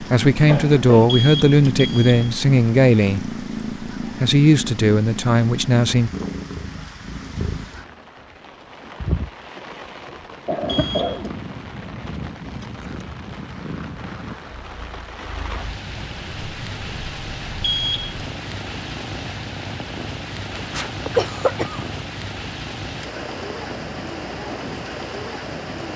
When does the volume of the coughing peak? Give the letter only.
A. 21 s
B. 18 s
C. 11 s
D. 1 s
A.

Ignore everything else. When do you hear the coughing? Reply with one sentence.
You can hear the coughing from 0.3 to 1.1 s, from 10.4 to 11.3 s and from 20.6 to 22.0 s.